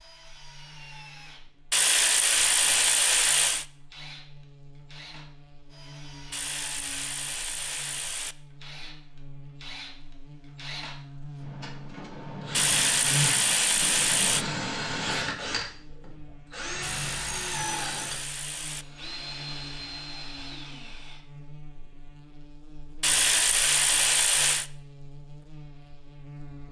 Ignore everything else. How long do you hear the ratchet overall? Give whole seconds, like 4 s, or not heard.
10 s.